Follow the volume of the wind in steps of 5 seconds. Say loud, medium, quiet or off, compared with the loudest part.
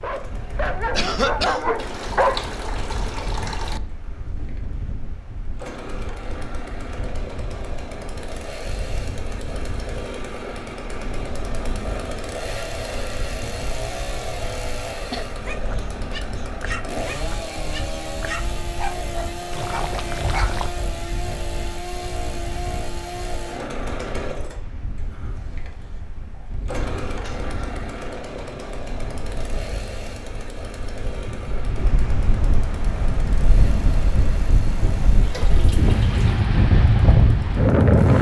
quiet, quiet, quiet, quiet, quiet, quiet, medium, loud.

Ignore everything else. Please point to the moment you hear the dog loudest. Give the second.
2 s.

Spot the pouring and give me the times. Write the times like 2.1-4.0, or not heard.
1.8-3.8, 19.5-20.7, 35.2-36.5.